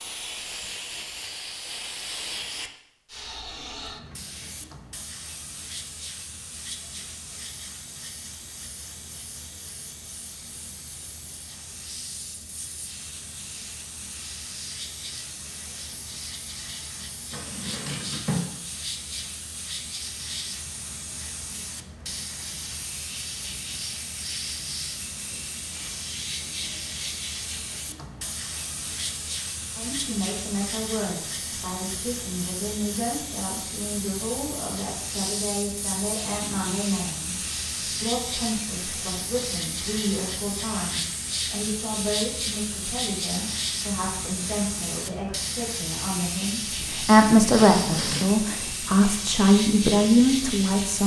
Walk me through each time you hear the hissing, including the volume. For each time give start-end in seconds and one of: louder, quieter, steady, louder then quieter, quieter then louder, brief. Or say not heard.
0.0-51.0 louder.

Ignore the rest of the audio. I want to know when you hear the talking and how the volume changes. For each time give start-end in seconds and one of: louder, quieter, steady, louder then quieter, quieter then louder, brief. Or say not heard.
29.8-51.0 louder.